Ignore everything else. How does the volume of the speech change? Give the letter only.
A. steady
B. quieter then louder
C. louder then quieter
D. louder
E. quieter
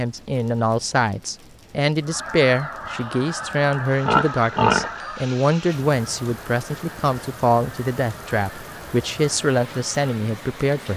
A.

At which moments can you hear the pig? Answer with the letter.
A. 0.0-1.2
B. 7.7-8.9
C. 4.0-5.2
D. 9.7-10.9
C.